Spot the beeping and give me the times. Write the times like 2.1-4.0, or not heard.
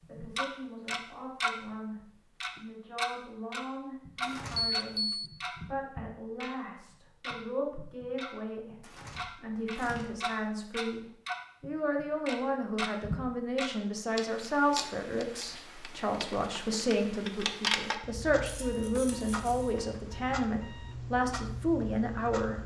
4.6-5.3, 18.6-20.9.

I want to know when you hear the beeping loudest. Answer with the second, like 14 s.
5 s.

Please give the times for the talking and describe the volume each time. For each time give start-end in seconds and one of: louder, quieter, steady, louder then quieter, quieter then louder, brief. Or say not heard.
0.1-1.9 brief
2.5-22.6 louder.